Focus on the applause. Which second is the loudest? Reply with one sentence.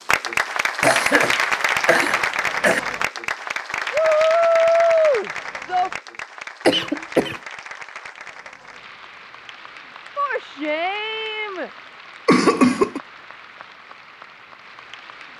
The volume of the applause peaks at 1 second.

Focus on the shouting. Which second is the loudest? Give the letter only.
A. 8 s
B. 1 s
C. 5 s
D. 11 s
C.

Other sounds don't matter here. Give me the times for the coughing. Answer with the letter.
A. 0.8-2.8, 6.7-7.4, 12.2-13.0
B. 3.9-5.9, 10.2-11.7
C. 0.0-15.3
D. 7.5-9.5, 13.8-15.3
A.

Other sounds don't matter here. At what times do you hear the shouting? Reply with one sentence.
You can hear the shouting from 3.9 to 5.9 s and from 10.2 to 11.7 s.